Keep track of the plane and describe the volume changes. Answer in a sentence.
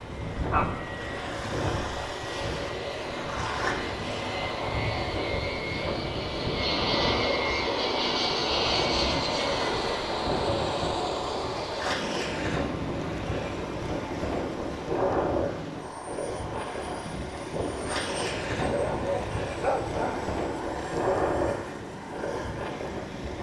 The loudness of the plane goes up, then down.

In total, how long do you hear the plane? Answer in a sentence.
The plane can be heard for 23 seconds in total.